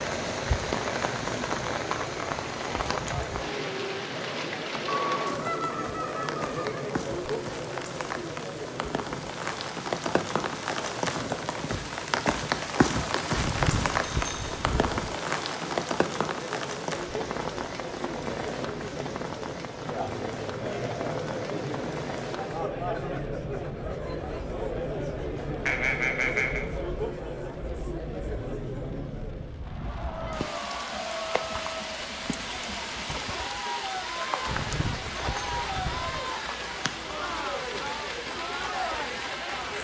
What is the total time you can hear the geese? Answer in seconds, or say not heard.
3 s.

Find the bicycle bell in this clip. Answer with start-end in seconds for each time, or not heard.
13.3-15.1, 34.5-36.2.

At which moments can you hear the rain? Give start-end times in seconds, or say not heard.
0.0-39.7.